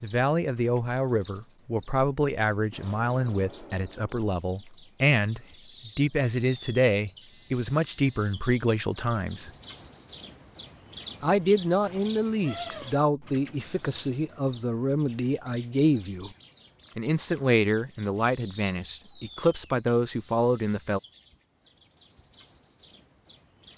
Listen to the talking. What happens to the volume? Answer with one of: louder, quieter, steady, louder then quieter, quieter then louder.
steady.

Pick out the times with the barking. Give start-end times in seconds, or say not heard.
not heard.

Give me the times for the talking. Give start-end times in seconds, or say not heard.
0.0-9.5, 11.2-16.3, 16.9-21.0.